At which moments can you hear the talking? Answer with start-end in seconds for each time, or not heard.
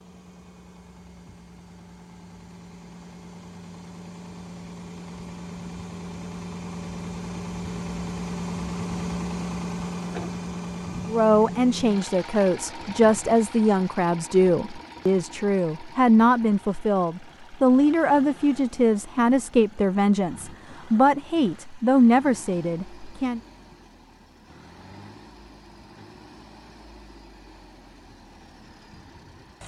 11.1-23.4.